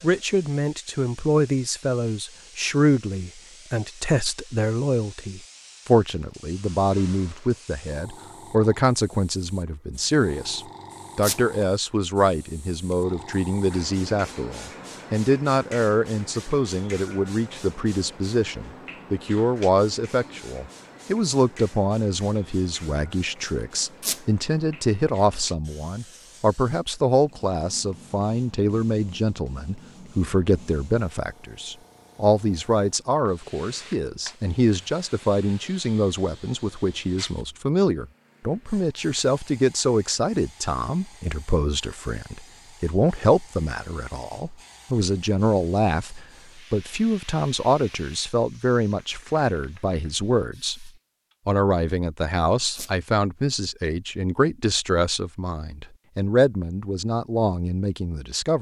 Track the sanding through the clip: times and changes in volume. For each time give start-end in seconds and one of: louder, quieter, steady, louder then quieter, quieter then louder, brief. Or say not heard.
not heard.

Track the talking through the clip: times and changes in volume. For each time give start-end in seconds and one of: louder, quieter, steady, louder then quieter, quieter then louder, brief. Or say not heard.
0.0-58.5 steady.